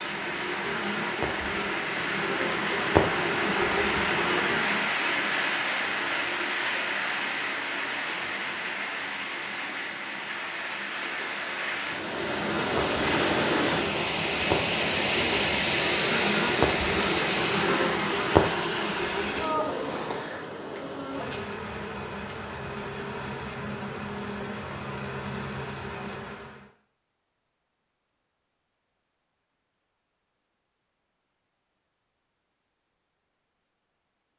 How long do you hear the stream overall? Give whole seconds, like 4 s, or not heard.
20 s.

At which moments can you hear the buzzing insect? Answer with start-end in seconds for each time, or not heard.
0.0-4.9, 12.2-26.7.